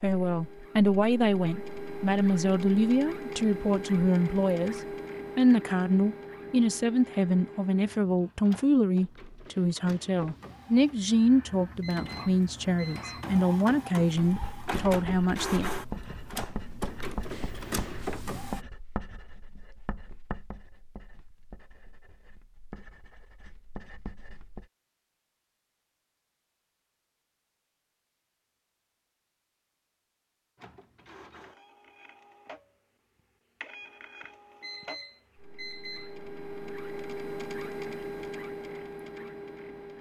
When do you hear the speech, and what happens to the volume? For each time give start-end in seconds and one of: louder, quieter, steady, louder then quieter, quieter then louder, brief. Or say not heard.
0.0-15.7 steady.